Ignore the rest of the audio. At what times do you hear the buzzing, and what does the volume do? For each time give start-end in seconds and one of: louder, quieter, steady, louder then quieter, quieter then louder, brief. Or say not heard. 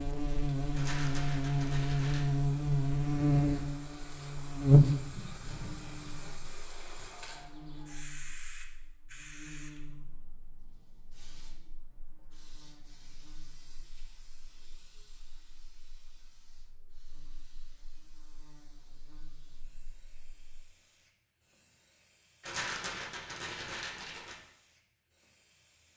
0.0-20.6 quieter.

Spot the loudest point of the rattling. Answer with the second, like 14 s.
23 s.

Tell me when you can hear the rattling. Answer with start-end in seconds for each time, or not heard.
0.7-2.2, 22.4-24.4.